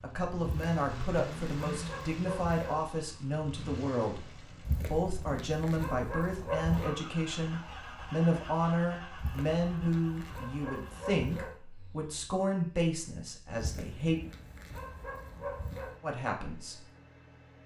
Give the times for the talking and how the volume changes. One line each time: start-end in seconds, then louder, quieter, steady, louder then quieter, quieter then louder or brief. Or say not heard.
0.0-14.2 steady
16.0-16.8 brief.